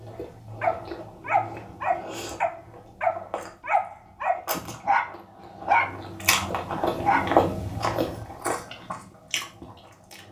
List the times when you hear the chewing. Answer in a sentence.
You can hear the chewing from 0.0 to 10.2 s.